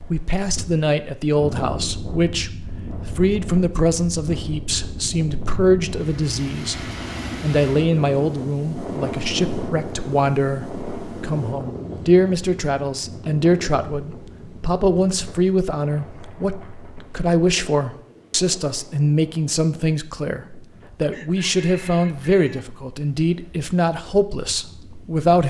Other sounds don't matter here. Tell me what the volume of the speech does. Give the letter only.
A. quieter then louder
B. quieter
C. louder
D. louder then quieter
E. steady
E.